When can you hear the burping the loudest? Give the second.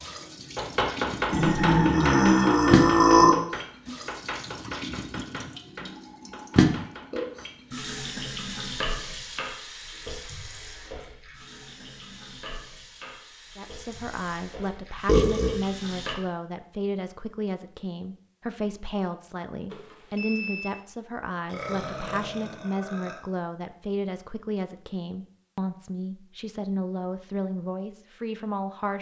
3 s.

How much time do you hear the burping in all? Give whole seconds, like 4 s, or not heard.
4 s.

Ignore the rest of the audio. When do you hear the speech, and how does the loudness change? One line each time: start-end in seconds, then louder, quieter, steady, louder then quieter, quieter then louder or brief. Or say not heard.
13.6-28.9 steady.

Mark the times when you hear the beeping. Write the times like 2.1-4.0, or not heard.
19.7-20.8.